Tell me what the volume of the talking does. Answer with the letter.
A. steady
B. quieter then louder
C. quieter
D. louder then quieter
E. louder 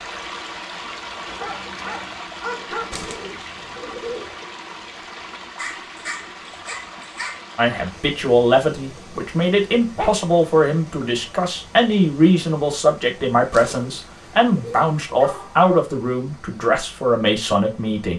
A.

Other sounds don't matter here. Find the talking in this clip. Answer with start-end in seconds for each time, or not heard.
7.5-18.1.